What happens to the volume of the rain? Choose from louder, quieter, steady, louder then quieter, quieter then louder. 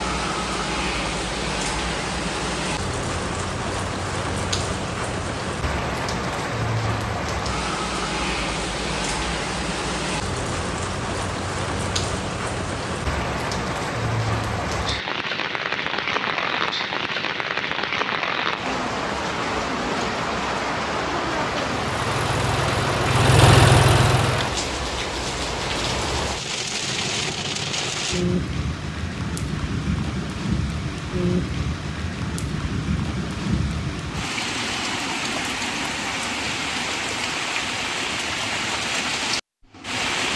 steady.